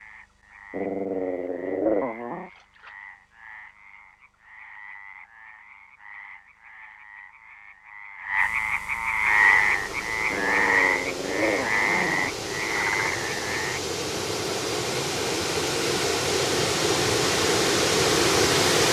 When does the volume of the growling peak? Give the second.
2 s.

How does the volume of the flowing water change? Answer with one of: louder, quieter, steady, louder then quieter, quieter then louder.
louder.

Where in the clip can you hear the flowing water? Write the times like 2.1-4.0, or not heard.
9.2-18.8.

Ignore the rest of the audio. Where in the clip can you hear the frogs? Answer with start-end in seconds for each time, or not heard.
0.0-13.8.